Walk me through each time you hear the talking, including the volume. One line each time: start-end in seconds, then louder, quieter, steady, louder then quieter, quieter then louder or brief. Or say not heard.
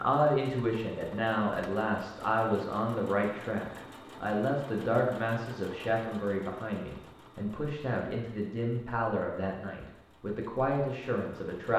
0.0-11.7 steady.